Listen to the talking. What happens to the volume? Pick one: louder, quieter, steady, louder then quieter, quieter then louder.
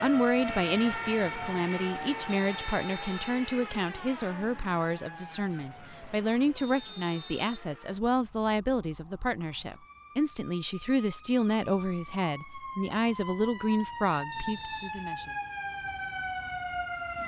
steady.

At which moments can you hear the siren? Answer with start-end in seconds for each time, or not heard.
0.0-17.2.